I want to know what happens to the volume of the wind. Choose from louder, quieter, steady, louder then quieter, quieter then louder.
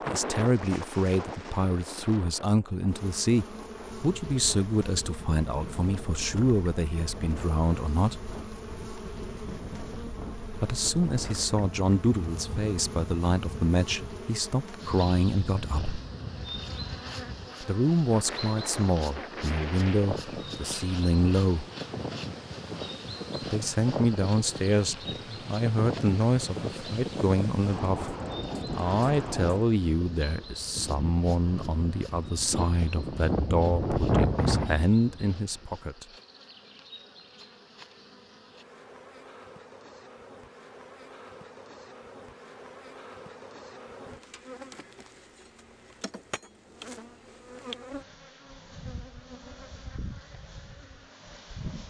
louder.